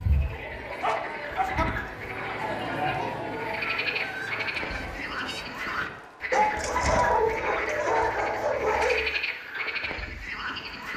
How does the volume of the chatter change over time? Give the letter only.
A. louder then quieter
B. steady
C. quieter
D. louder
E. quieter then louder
A.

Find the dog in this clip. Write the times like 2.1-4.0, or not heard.
0.8-1.6, 6.3-9.2.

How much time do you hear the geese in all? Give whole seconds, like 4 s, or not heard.
2 s.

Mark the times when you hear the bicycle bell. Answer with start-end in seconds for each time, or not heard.
not heard.